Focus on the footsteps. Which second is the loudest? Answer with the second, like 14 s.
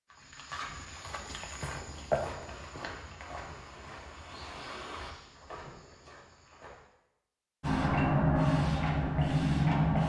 2 s.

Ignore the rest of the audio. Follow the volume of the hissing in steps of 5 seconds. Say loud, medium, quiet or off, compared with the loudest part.
quiet, loud.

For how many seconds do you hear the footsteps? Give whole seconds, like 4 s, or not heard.
7 s.